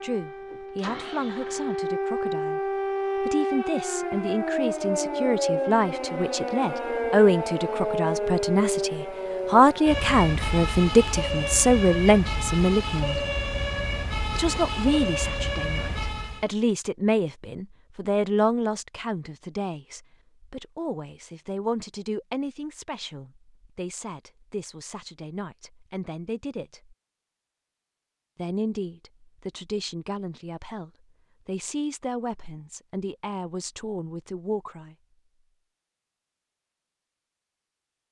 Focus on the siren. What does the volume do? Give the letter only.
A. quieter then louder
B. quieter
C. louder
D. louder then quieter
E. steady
E.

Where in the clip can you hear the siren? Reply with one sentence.
You can hear the siren from 0.0 to 16.5 s.